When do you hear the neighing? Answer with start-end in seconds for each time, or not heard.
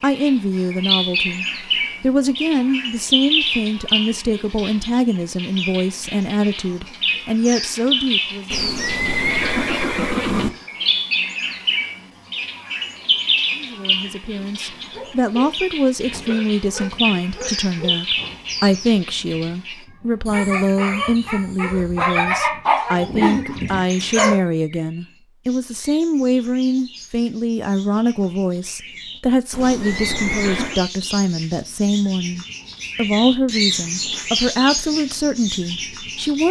8.5-10.5, 29.5-30.8.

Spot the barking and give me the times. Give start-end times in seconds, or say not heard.
14.8-24.4.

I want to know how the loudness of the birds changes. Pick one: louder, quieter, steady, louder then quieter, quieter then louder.
quieter then louder.